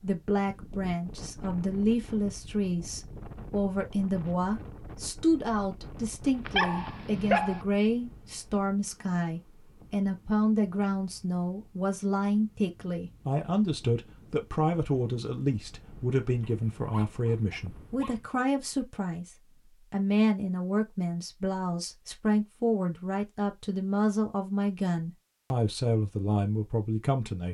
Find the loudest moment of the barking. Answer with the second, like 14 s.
7 s.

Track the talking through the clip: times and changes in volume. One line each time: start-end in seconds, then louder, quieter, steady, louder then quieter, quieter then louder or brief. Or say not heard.
0.0-27.4 steady.